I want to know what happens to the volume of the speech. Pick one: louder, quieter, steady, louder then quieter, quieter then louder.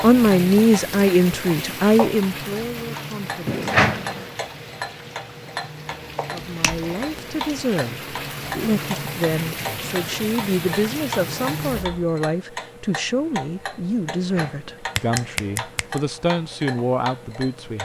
quieter.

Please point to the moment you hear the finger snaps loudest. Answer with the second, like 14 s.
4 s.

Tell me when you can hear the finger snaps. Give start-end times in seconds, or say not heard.
3.5-4.3, 6.3-7.7, 14.1-16.0.